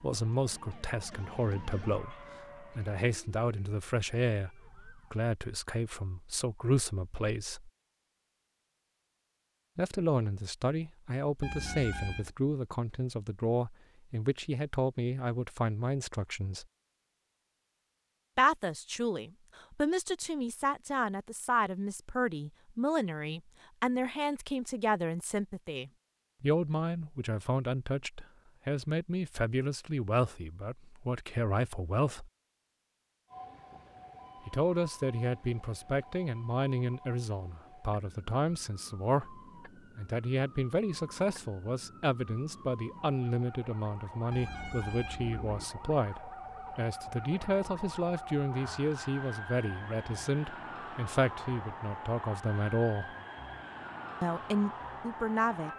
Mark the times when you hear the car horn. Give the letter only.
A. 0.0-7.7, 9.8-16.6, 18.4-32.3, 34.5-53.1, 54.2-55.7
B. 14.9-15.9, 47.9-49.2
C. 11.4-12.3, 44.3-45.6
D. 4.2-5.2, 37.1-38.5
C.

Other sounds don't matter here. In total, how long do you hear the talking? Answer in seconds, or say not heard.
49 s.